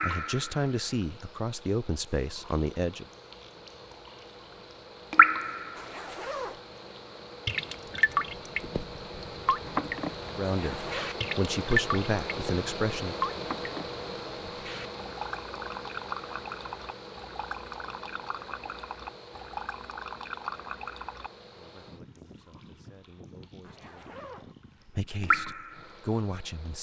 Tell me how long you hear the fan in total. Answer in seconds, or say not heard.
27 s.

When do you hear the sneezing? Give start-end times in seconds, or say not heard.
not heard.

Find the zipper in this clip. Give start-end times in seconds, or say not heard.
5.8-6.6, 10.4-11.2, 23.6-24.6.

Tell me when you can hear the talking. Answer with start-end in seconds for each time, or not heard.
0.0-3.0, 10.2-13.2, 21.5-26.7.